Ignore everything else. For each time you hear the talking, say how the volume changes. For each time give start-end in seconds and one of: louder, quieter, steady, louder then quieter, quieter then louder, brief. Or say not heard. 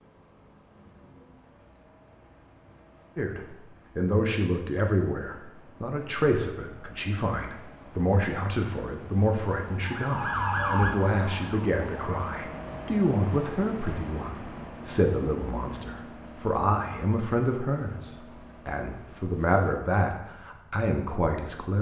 3.1-21.7 steady.